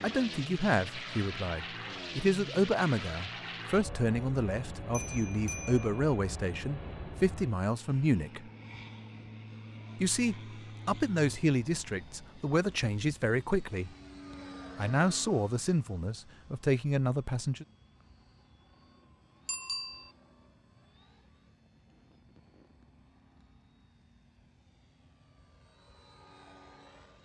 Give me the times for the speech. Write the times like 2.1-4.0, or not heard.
0.0-8.4, 10.0-13.9, 14.8-17.6.